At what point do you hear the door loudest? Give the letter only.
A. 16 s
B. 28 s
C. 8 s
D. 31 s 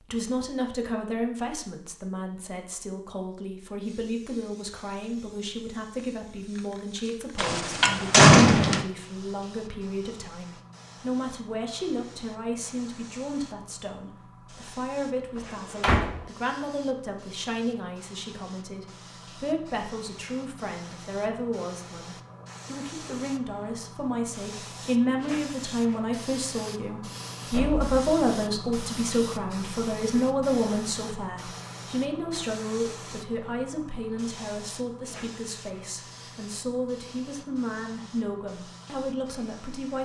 C.